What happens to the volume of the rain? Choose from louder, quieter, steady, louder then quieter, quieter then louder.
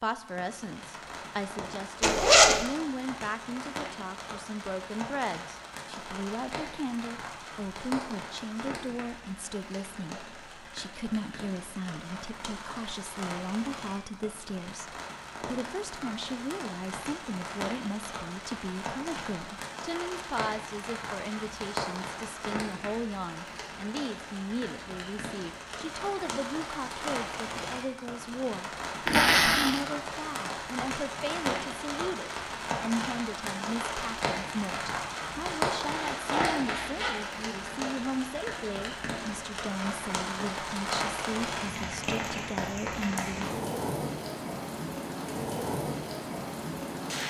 louder.